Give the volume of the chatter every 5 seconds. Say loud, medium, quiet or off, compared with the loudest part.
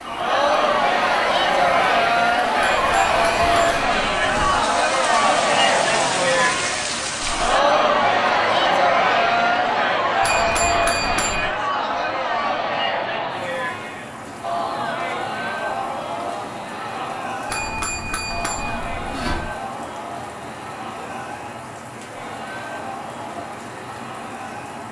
loud, loud, medium, medium, quiet.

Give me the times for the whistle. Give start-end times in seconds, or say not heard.
not heard.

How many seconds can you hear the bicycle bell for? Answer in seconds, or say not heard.
5 s.